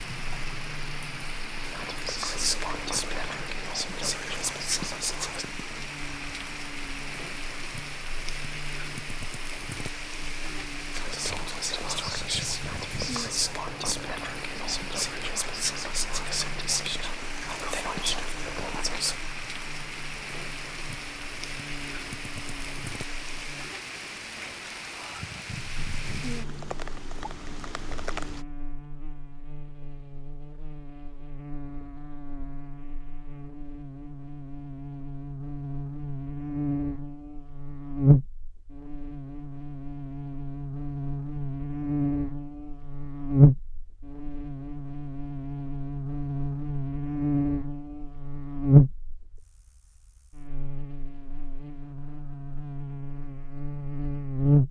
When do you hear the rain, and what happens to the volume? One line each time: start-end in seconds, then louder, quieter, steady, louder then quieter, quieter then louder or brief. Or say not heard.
0.0-28.4 steady.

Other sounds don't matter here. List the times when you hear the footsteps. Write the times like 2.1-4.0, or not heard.
not heard.